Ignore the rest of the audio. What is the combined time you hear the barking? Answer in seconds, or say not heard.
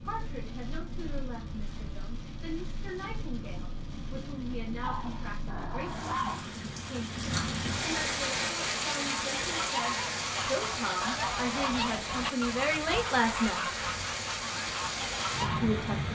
2 s.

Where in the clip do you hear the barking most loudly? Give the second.
6 s.